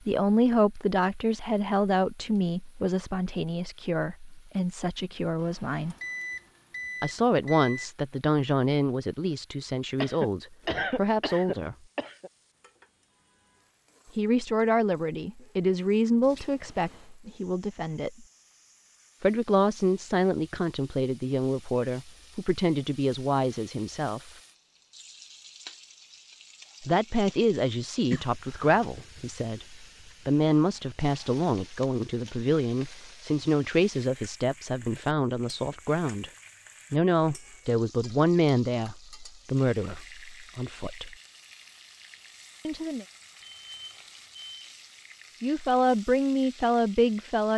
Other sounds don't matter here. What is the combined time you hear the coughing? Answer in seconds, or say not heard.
3 s.